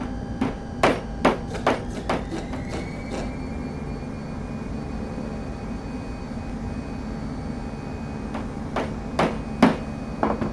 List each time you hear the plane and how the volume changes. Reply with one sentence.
The plane can be heard from 0.0 to 10.4 s, at a steady volume.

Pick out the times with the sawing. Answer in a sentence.
The sawing can be heard from 1.4 to 3.3 s.